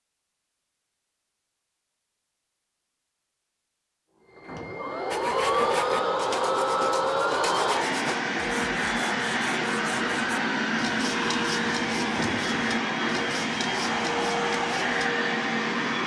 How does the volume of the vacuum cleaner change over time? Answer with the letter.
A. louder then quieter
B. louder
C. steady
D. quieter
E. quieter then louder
C.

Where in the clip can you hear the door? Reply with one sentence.
You can hear the door from 4.4 to 5.0 s and from 12.1 to 12.6 s.